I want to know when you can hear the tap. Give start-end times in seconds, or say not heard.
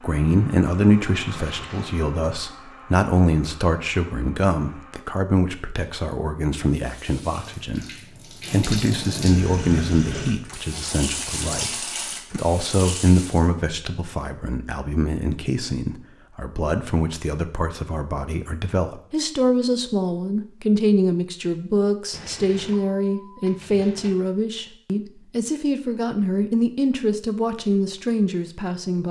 6.8-13.4.